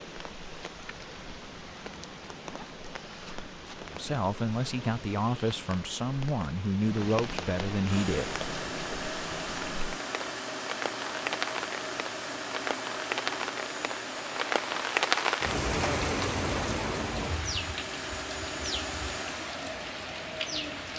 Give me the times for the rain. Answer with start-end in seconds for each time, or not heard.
0.0-20.9.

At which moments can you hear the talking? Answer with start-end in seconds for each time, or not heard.
3.9-8.4.